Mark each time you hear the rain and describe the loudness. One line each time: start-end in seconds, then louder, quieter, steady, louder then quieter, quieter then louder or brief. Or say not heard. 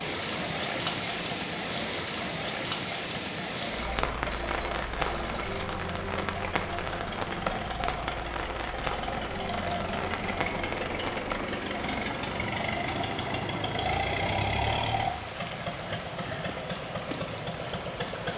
0.0-18.3 quieter.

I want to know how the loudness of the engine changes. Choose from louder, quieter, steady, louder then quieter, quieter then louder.
louder.